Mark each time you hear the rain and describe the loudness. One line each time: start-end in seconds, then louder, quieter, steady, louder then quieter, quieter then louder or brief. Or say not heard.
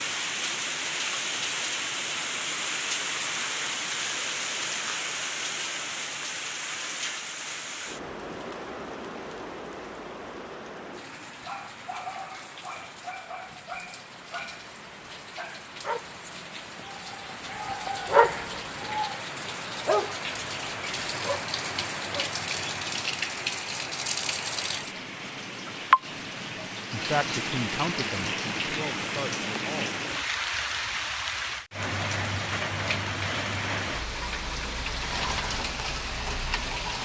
0.0-36.9 quieter then louder.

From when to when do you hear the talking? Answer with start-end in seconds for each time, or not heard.
26.9-29.9.